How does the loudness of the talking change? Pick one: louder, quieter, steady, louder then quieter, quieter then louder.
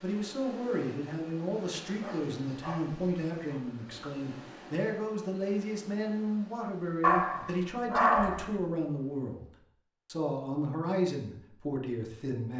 steady.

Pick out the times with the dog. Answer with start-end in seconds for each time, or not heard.
1.9-3.6, 7.0-8.5.